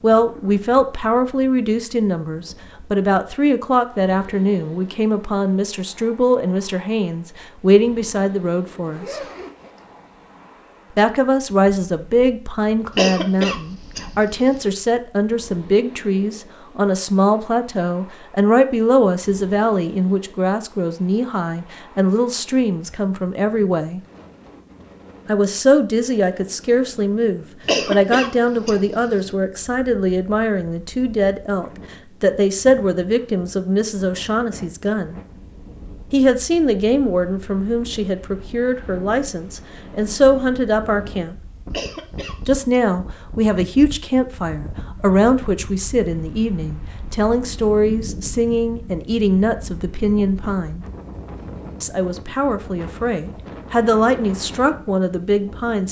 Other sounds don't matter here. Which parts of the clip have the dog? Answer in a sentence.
You can't hear the dog here.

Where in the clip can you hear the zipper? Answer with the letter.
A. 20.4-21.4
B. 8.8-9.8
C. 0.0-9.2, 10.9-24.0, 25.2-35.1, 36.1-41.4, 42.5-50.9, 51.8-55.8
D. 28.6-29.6
B.